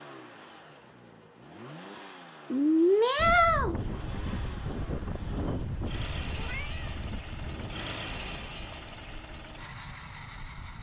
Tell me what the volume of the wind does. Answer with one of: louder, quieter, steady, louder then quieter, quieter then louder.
quieter.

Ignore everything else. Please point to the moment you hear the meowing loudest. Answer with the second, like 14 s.
3 s.